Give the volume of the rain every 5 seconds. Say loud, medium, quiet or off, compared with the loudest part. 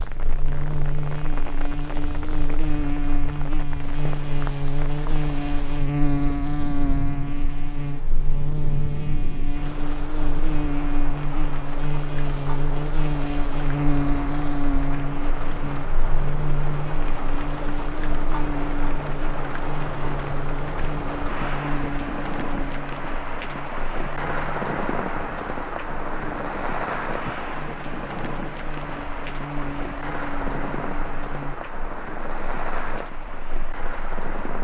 medium, medium, medium, loud, loud, loud, loud.